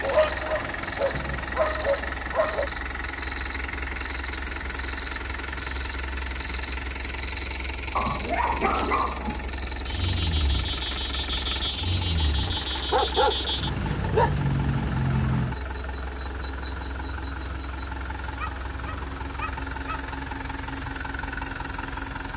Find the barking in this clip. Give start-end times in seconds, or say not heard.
0.0-2.7, 8.0-9.5, 12.4-14.3, 18.2-20.1.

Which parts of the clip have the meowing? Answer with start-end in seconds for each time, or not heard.
not heard.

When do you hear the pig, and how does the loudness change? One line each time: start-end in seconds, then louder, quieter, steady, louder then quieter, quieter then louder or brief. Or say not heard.
not heard.